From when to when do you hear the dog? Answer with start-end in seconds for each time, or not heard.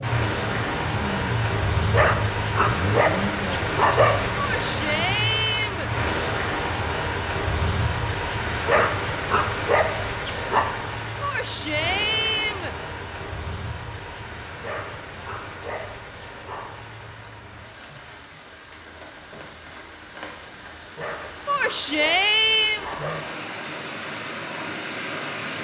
1.9-4.3, 8.7-10.7, 14.6-16.7, 20.9-23.4.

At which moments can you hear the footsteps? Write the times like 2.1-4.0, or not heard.
not heard.